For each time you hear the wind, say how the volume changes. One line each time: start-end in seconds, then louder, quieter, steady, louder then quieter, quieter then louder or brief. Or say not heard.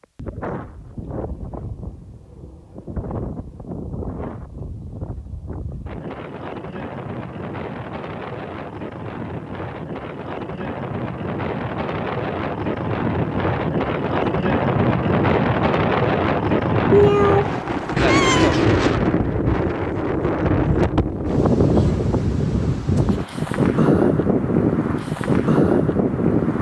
0.0-26.5 louder.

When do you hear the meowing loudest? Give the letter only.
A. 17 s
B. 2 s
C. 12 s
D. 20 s
A.